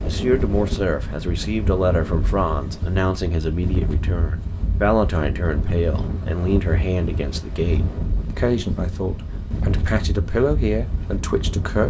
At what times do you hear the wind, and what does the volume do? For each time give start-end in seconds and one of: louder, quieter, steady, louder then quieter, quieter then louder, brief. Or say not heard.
0.0-11.8 steady.